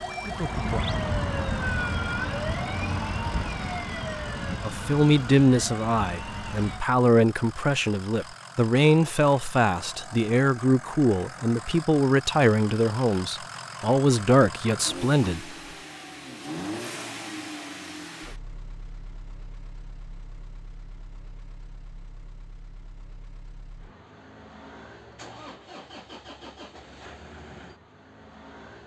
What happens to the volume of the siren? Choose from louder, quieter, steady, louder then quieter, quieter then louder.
quieter.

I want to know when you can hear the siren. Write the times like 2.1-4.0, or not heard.
0.0-6.8.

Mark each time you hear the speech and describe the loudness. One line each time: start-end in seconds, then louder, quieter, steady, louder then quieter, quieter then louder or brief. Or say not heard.
4.6-15.4 steady.